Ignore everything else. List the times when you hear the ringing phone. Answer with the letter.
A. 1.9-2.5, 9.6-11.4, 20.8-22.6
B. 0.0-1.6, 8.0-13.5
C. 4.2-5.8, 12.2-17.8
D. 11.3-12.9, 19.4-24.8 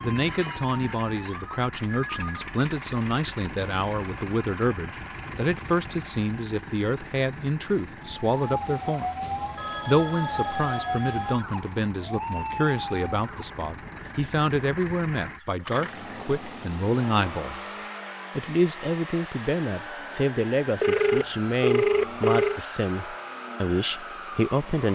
A.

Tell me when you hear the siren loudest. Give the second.
11 s.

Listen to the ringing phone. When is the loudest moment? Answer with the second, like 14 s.
22 s.